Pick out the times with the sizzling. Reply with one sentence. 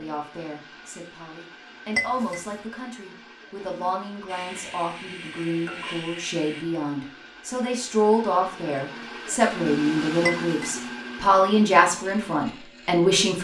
You can hear the sizzling from 4.2 to 6.7 s.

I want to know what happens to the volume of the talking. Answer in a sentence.
The volume of the talking goes up.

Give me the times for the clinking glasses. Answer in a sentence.
You can hear the clinking glasses from 1.9 to 2.5 s and from 10.2 to 10.8 s.